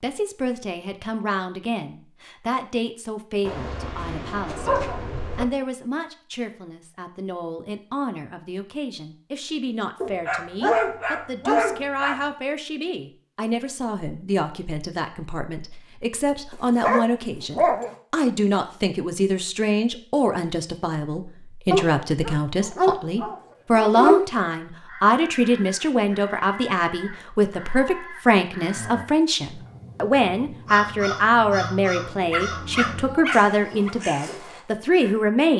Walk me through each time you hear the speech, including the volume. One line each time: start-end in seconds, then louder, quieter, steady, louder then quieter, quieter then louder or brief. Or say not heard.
0.0-35.5 louder.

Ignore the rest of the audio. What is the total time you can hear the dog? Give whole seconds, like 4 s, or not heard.
10 s.